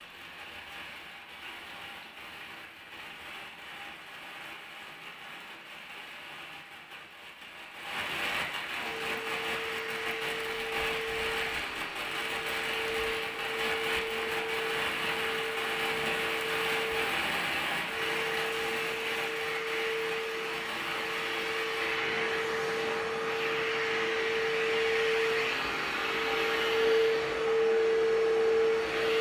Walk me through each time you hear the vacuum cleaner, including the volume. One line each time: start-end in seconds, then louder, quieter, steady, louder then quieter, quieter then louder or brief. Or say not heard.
8.8-29.1 louder.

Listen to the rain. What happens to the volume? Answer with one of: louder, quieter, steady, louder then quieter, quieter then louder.
louder then quieter.